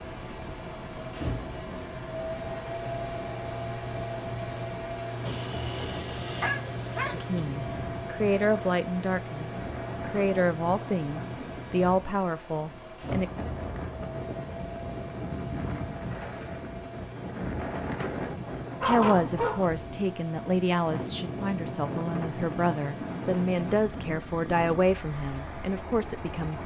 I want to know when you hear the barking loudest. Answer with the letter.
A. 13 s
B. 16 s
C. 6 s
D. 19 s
D.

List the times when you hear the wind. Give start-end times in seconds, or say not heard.
0.0-26.6.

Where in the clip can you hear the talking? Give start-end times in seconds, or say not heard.
7.2-13.3, 18.8-26.6.